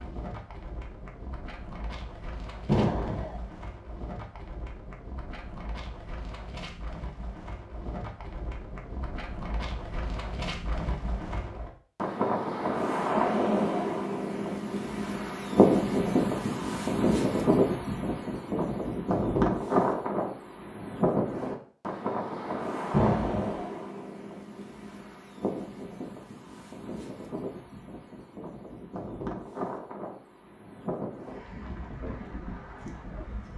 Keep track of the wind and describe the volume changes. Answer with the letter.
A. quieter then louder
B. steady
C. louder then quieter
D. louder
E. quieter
C.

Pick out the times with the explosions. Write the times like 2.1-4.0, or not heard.
2.6-3.4, 22.9-23.6.